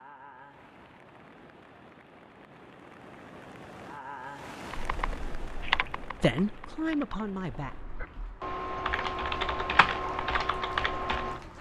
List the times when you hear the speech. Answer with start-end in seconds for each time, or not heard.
6.2-7.8.